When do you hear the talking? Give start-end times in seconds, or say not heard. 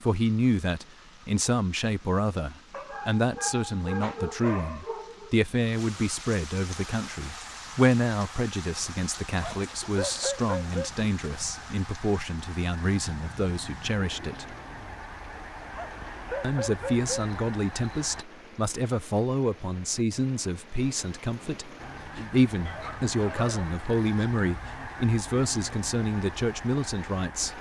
0.0-14.4, 16.4-27.5.